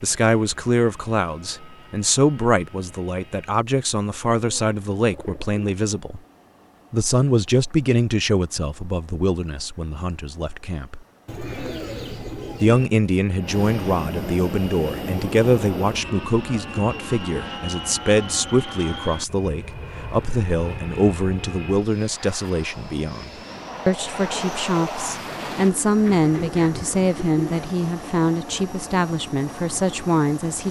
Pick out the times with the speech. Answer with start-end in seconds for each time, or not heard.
0.0-6.2, 6.9-11.0, 12.6-30.6.